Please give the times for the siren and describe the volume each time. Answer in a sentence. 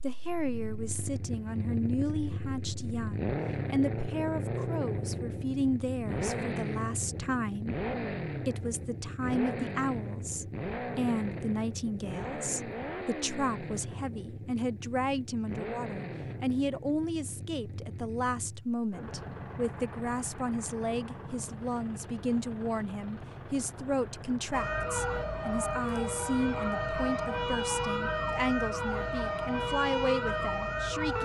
The siren can be heard from 24.5 to 31.2 s, at a steady volume.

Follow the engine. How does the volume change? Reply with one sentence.
The loudness of the engine goes down.